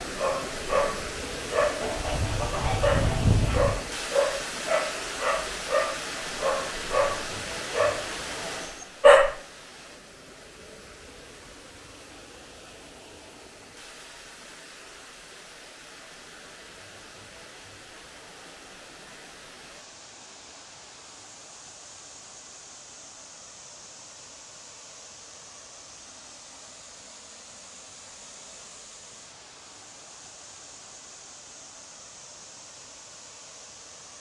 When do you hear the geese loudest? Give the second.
3 s.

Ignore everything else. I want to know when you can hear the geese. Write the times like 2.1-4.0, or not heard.
1.8-3.7.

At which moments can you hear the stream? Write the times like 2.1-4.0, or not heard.
0.0-34.1.